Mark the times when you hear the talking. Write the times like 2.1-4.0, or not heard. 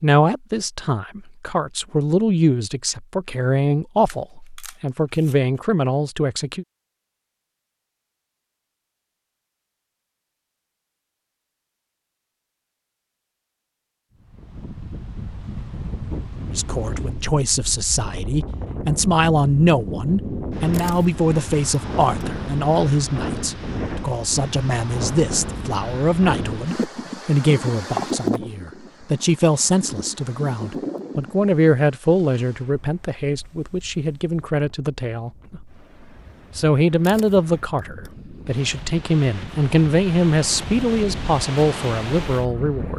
0.0-6.7, 16.5-35.6, 36.5-42.9.